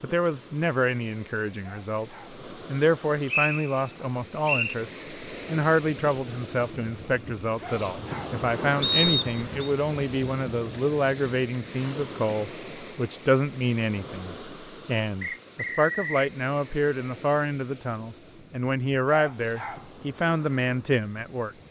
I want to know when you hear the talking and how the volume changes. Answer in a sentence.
You can hear the talking from 0.0 to 21.6 s, at a steady volume.